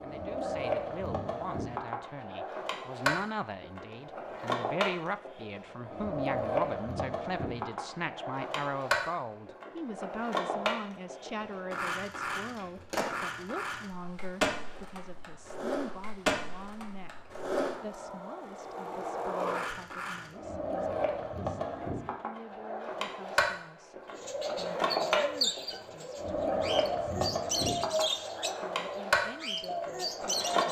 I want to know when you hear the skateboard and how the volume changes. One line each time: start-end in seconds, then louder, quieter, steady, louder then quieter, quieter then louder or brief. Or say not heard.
0.0-30.6 steady.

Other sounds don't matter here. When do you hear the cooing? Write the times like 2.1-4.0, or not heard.
24.1-30.6.